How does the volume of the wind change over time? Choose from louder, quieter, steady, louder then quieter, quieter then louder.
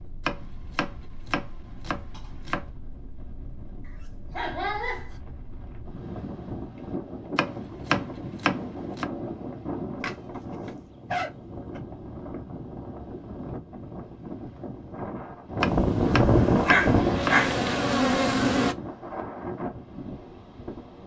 louder.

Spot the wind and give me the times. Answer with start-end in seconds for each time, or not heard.
0.0-21.0.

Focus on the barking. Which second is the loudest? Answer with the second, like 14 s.
17 s.